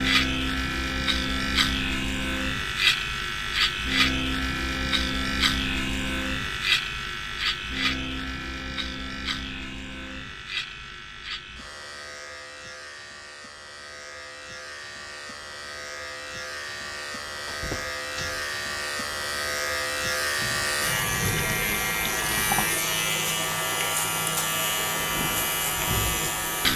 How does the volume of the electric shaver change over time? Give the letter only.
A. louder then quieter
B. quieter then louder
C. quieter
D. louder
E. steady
B.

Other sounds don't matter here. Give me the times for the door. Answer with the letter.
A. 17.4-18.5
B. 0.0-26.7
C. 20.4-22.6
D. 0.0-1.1
A.